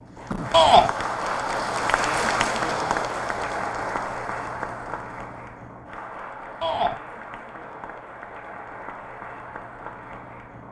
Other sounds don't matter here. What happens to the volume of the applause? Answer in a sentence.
The volume of the applause goes down.